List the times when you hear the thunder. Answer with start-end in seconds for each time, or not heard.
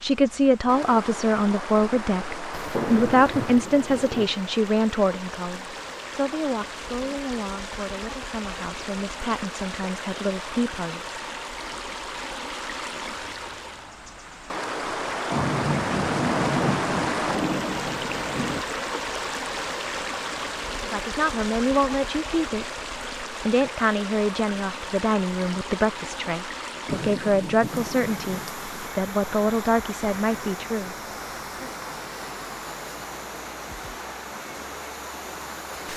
2.5-4.2, 15.3-18.6, 26.9-28.8.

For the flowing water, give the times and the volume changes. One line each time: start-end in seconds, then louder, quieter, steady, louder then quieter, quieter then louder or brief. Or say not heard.
0.0-35.9 louder then quieter.